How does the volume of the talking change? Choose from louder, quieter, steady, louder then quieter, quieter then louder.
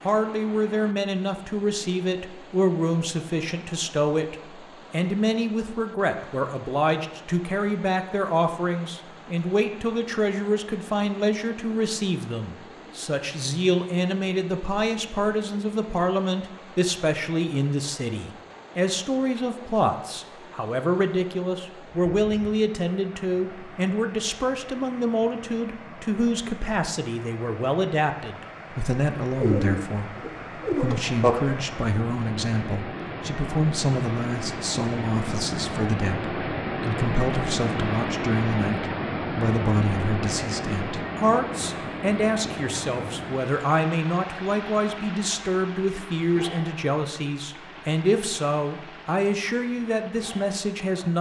steady.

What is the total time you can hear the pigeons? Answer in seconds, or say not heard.
2 s.